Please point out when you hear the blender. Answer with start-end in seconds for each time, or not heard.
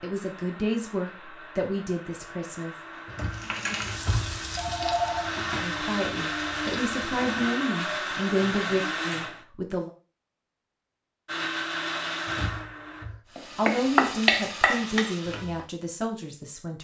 0.0-9.4, 11.2-13.1.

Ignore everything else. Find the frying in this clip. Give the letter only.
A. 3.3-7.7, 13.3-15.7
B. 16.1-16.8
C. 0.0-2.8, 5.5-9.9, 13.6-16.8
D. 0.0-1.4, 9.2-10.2
A.